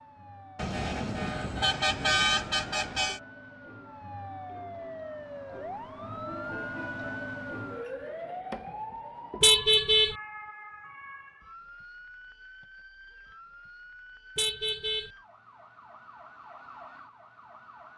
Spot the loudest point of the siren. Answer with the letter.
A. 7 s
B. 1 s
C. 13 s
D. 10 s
A.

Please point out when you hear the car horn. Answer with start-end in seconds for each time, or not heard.
0.6-3.2, 9.4-10.2, 14.3-15.1.